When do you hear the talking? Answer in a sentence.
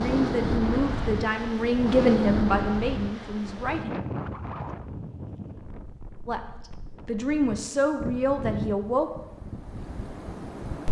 You can hear the talking from 0.0 to 3.9 s and from 6.2 to 9.1 s.